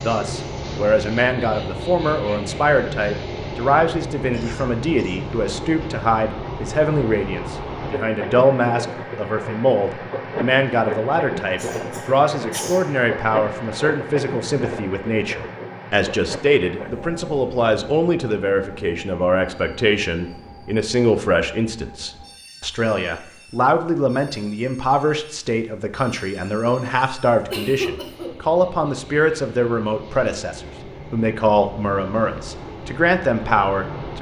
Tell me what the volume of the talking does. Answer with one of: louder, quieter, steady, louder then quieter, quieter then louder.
steady.